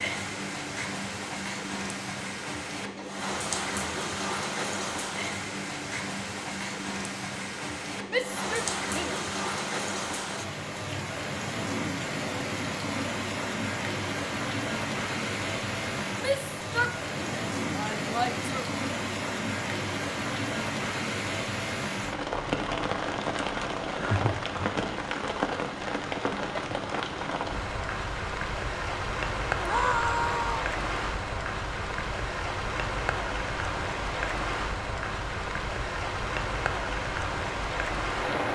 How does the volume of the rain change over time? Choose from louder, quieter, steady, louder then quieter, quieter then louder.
steady.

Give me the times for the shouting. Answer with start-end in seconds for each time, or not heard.
8.1-9.2, 16.1-18.6, 29.6-30.7.